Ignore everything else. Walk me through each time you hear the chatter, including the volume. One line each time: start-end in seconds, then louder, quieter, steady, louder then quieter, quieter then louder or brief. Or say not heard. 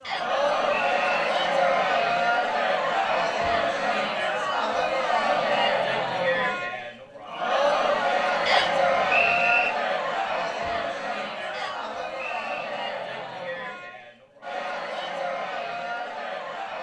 0.0-16.7 quieter.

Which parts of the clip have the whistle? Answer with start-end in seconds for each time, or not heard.
0.0-1.3, 8.4-9.7, 11.5-12.6.